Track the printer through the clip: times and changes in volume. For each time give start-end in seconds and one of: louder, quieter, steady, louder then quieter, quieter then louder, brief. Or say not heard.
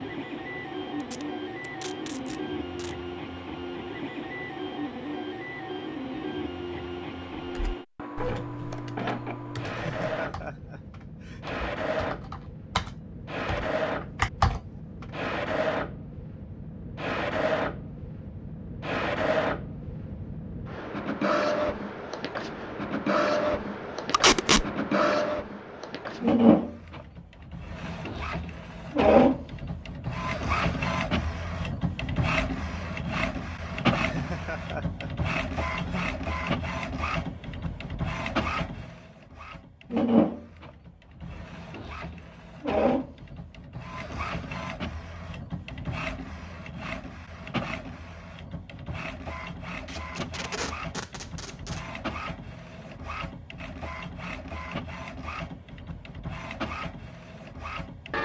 0.0-58.1 louder then quieter.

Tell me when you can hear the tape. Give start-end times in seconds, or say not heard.
1.0-3.0, 24.1-24.6, 49.9-51.8.